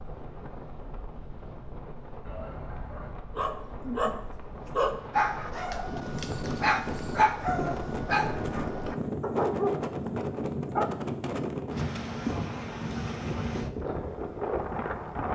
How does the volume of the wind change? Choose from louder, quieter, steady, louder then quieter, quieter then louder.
louder.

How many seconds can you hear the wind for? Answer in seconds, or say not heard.
15 s.